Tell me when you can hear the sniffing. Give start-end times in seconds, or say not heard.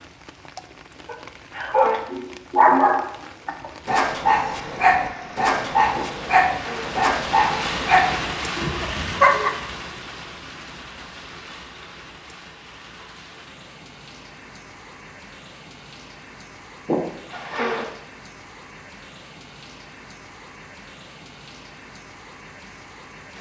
6.0-7.0, 16.9-17.9.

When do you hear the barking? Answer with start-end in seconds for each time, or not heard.
1.1-9.5.